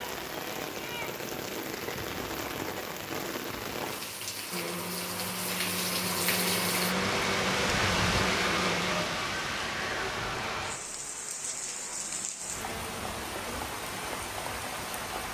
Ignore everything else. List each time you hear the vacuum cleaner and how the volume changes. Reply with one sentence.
You can hear the vacuum cleaner from 4.5 to 9.1 s, getting louder.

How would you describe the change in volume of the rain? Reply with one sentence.
The volume of the rain goes up, then down.